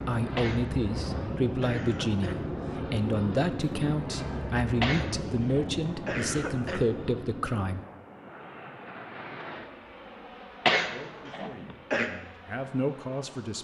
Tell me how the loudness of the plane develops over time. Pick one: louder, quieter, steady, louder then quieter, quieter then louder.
quieter.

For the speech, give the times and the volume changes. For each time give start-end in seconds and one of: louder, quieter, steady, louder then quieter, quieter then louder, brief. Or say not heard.
0.1-7.8 steady
10.8-13.5 brief.